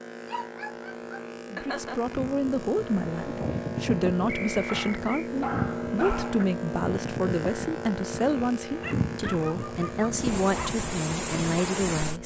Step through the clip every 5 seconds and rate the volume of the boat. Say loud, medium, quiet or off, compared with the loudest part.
loud, loud, medium.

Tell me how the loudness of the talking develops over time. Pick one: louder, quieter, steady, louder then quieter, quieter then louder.
steady.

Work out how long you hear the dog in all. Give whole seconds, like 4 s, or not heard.
6 s.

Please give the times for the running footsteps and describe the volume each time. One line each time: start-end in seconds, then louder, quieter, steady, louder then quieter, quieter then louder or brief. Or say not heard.
not heard.